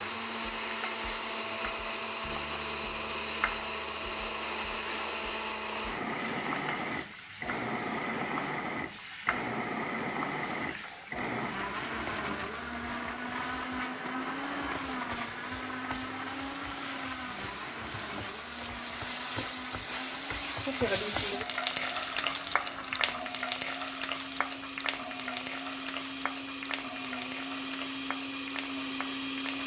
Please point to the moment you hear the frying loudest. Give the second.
21 s.